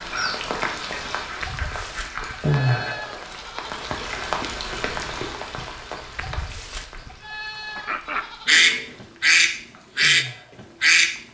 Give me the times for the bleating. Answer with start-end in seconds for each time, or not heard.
1.4-3.7, 6.2-8.6.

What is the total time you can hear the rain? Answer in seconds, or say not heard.
11 s.